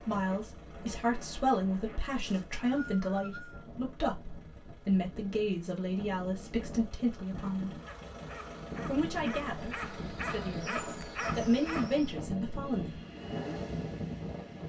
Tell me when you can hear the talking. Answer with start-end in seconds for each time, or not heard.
0.1-7.8, 8.8-13.0.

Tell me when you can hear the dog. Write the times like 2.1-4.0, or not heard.
7.3-12.2.